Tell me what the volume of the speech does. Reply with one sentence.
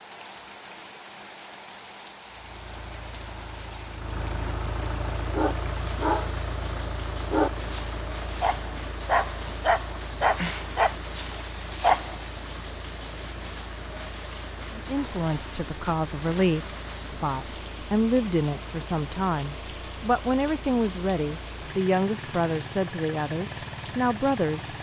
The volume of the speech stays about the same.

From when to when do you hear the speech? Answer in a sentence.
You can hear the speech from 14.8 to 24.7 s.